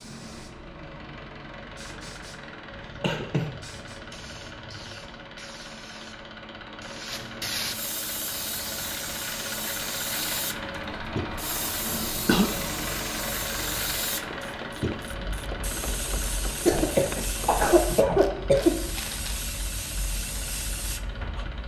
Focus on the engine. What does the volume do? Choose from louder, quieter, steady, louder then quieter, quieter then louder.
louder then quieter.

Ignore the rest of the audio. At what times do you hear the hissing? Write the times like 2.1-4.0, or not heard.
0.0-21.6.